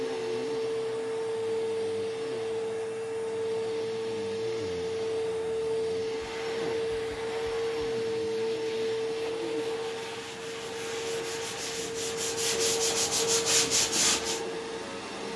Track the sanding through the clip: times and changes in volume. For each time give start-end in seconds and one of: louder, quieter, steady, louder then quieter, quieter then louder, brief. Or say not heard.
6.1-14.4 louder.